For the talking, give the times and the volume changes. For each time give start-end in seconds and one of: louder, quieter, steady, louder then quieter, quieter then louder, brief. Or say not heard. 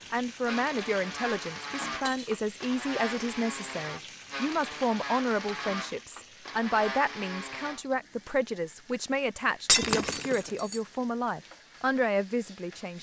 0.1-12.9 steady.